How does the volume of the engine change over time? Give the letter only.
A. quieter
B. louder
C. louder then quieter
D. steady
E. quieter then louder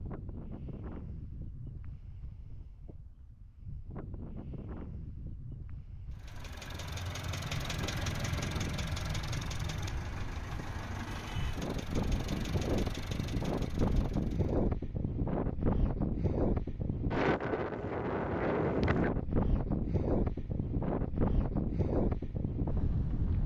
A.